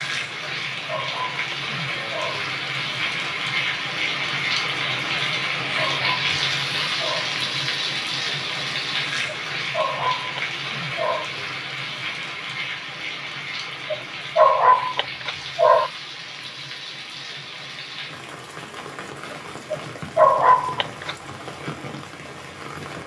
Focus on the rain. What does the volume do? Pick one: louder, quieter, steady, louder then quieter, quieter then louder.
quieter.